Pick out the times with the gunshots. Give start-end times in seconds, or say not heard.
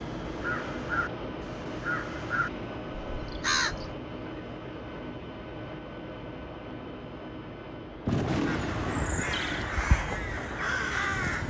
8.1-9.7.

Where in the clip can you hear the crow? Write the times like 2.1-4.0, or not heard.
0.0-4.0, 8.4-11.4.